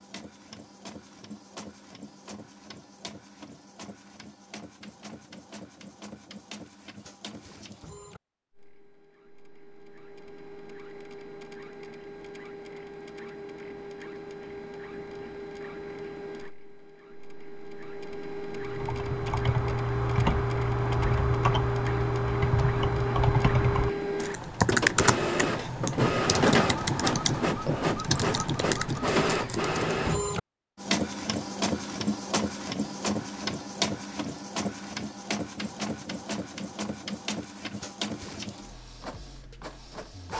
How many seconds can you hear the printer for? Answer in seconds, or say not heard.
40 s.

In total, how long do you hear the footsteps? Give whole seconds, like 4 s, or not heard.
not heard.